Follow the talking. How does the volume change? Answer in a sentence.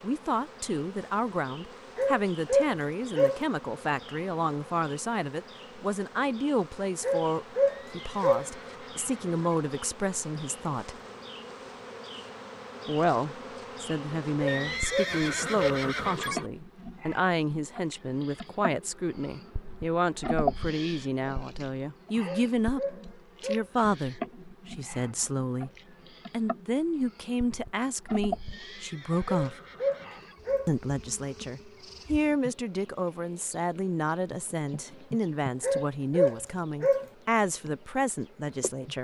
The volume of the talking stays about the same.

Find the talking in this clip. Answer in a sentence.
You can hear the talking from 0.0 to 10.9 s, from 12.8 to 25.7 s, from 26.3 to 29.6 s and from 30.6 to 38.9 s.